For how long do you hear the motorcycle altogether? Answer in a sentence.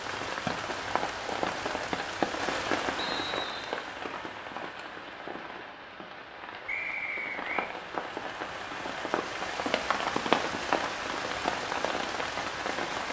You can't hear the motorcycle here.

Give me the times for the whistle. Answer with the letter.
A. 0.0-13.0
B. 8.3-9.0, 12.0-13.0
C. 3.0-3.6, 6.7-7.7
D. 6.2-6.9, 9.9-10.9
C.